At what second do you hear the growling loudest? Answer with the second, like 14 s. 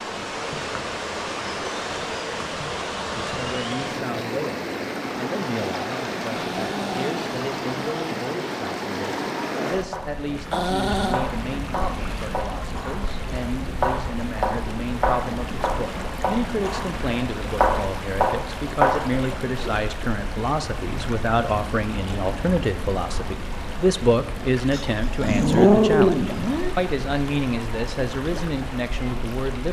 26 s.